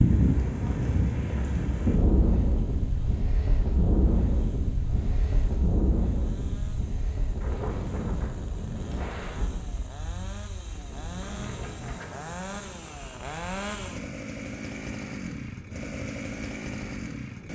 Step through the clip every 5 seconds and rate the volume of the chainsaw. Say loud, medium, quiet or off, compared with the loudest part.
quiet, quiet, loud, loud.